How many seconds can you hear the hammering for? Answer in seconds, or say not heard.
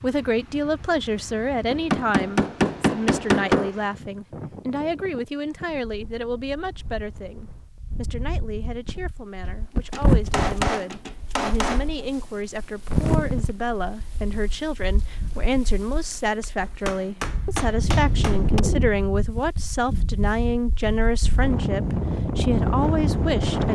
6 s.